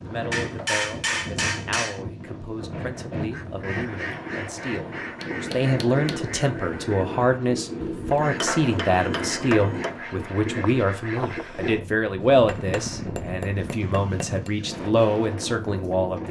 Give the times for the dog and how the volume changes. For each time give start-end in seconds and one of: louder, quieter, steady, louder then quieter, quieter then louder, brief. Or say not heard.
not heard.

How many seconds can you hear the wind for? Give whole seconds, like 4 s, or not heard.
16 s.